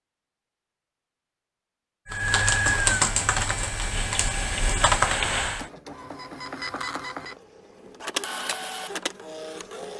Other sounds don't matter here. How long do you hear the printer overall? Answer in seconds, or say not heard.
6 s.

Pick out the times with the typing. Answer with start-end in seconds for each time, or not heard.
2.0-5.7.